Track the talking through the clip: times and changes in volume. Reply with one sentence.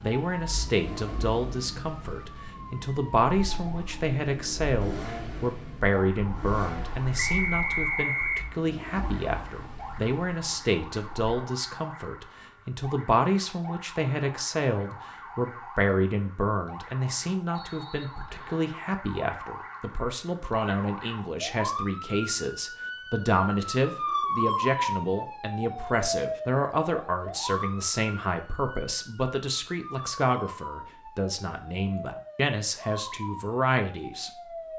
You can hear the talking from 0.0 to 34.3 s, at a steady volume.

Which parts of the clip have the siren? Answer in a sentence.
The siren can be heard from 0.0 to 34.7 s.